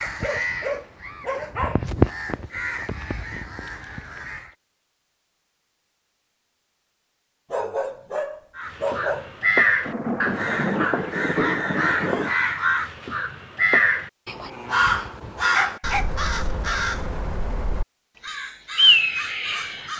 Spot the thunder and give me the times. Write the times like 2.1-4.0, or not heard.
9.8-12.3.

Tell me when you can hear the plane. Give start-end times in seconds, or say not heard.
not heard.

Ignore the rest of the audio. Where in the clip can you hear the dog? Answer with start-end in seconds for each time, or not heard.
0.0-1.9, 7.5-9.3, 14.4-16.1.